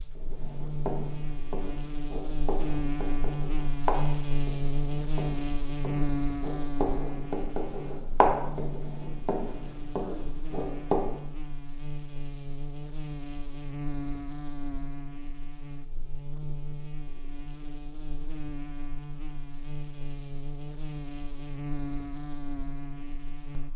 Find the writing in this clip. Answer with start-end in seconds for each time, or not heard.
0.1-11.2.